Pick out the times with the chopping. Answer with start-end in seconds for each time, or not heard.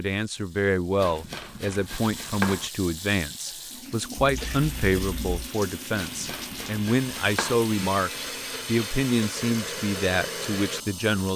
1.0-2.7, 6.0-7.6.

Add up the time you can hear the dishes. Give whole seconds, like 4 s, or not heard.
not heard.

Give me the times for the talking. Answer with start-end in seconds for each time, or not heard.
0.0-11.3.